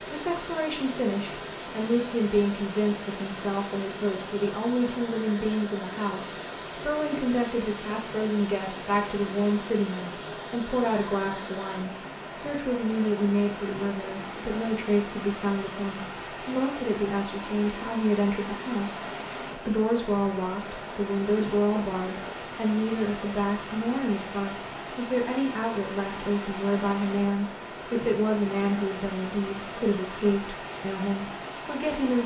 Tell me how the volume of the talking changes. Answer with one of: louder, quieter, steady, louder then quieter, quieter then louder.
steady.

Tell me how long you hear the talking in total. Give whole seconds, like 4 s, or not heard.
32 s.